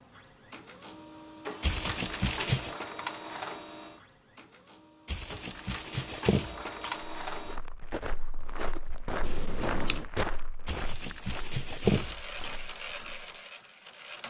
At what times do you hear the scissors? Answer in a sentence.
You can hear the scissors from 9.2 to 10.1 s.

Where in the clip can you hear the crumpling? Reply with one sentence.
The crumpling can be heard from 1.6 to 2.8 s, from 5.0 to 7.0 s and from 10.7 to 12.6 s.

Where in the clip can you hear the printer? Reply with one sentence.
The printer can be heard from 0.0 to 7.6 s and from 11.8 to 14.2 s.